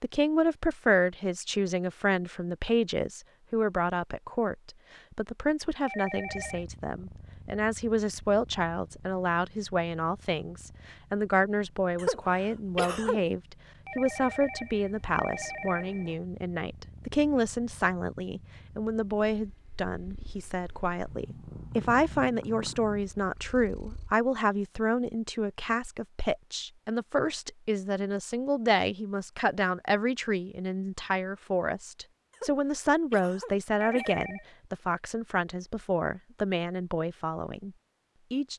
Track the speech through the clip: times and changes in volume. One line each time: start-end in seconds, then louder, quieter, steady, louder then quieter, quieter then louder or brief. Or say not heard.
0.0-38.5 steady.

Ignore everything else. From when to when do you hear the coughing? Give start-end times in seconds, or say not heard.
11.9-13.2, 32.3-34.1.